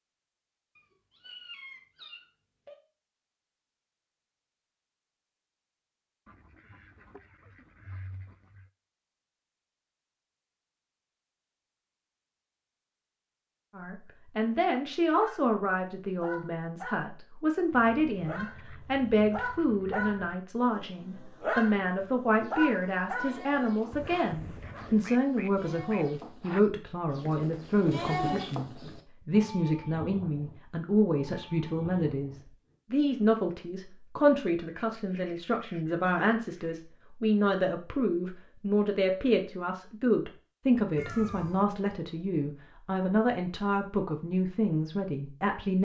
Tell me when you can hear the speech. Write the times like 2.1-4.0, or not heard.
13.8-45.7.